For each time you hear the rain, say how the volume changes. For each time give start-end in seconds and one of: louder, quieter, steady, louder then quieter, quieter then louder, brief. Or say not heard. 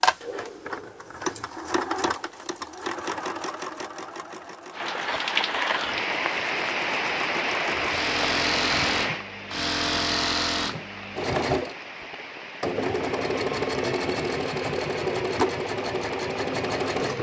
4.7-17.1 quieter.